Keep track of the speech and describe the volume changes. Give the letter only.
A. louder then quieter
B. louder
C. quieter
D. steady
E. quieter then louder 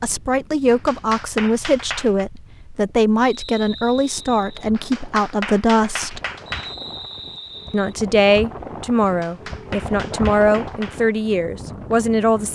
D.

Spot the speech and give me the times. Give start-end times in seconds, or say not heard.
0.0-6.2, 7.7-12.5.